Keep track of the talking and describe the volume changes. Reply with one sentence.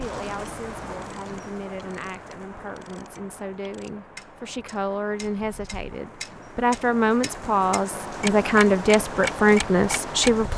The volume of the talking goes up.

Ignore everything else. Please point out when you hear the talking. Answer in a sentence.
You can hear the talking from 0.0 to 10.5 s.